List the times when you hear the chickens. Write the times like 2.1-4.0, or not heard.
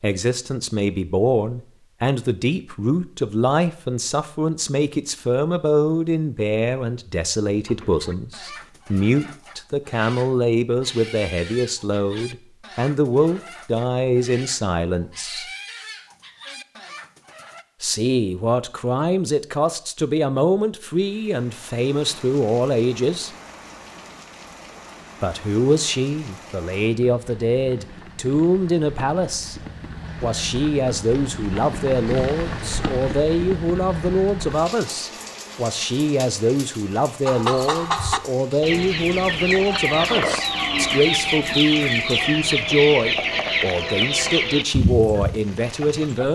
7.7-17.6, 37.2-46.3.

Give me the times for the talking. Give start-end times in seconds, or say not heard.
0.0-15.4, 17.8-23.3, 25.2-29.6, 30.2-46.3.